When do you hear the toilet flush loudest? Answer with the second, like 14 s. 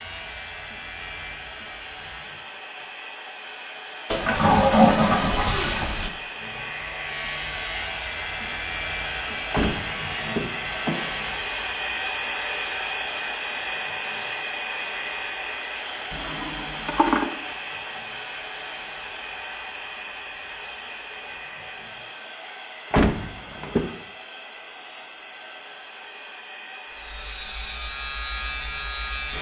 5 s.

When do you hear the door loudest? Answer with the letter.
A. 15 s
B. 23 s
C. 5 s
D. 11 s
B.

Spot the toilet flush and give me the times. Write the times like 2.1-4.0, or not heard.
4.1-6.1, 16.1-17.3.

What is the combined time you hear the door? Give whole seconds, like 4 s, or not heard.
3 s.